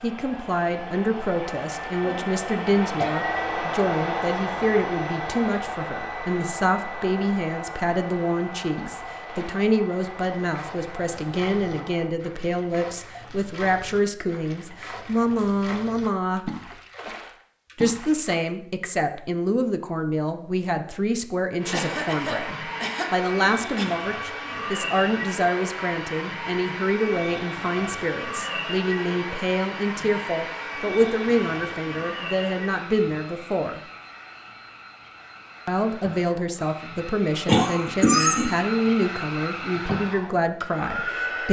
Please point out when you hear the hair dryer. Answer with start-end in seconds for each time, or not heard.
0.0-12.1, 21.6-41.4.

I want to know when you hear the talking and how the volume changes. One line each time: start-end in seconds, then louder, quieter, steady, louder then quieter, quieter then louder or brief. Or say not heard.
0.0-16.5 steady
17.8-33.8 steady
35.6-41.4 steady.